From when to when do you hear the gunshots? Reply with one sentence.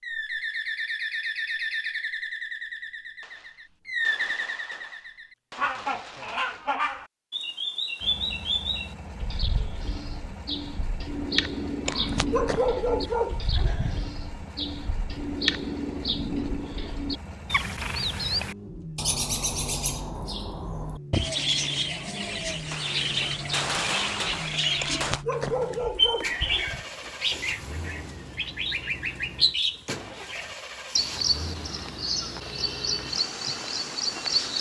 The gunshots can be heard from 3.2 to 6.7 s and from 22.7 to 25.2 s.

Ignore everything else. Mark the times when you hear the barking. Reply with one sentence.
You can hear the barking from 11.8 to 14.2 s and from 24.8 to 26.9 s.